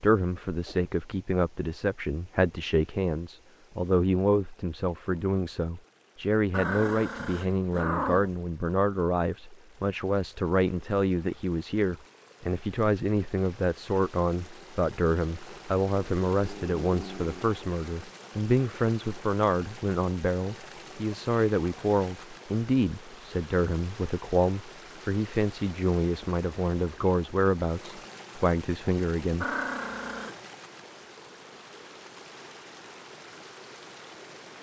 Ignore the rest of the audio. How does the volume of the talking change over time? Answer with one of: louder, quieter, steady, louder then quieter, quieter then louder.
steady.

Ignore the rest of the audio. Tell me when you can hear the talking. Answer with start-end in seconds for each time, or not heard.
0.0-29.4.